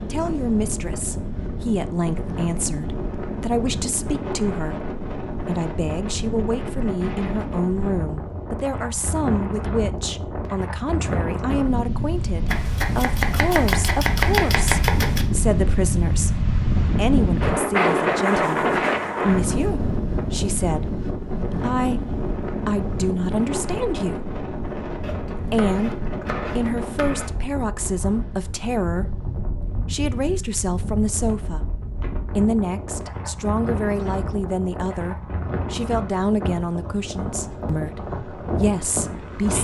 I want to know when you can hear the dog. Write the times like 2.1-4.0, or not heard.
not heard.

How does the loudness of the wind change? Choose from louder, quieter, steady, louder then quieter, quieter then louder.
louder then quieter.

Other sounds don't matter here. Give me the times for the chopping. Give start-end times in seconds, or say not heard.
12.4-15.2, 25.0-27.4.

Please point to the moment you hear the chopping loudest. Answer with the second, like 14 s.
14 s.